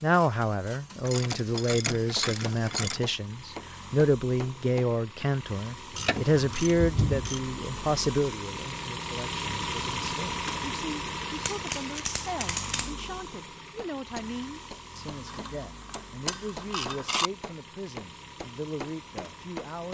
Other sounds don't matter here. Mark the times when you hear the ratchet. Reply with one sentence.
You can hear the ratchet from 1.1 to 3.0 s, from 5.9 to 7.5 s, from 11.4 to 12.9 s and from 15.2 to 17.3 s.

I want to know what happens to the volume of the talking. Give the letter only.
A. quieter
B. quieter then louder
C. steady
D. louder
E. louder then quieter
A.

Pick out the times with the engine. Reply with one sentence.
The engine can be heard from 0.0 to 19.8 s.